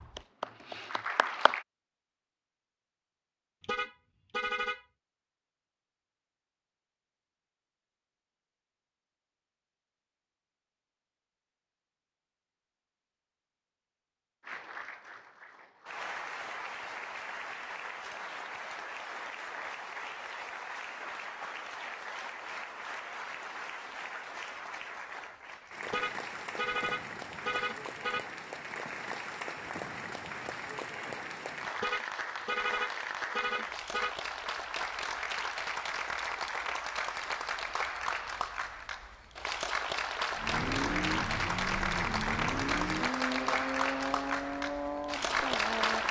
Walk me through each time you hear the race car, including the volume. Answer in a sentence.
You can hear the race car from 40.4 to 46.0 s, at a steady volume.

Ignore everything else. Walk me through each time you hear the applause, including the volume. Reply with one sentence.
The applause can be heard briefly from 0.0 to 1.6 s; and from 14.4 to 46.0 s, getting louder.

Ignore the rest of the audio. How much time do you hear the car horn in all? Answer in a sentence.
You can hear the car horn for 6 seconds altogether.